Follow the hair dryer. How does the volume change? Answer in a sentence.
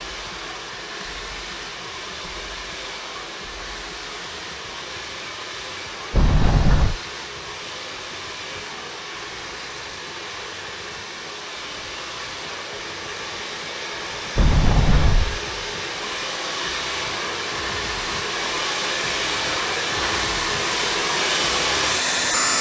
The volume of the hair dryer goes up.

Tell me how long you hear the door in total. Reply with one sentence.
You can hear the door for 2 seconds altogether.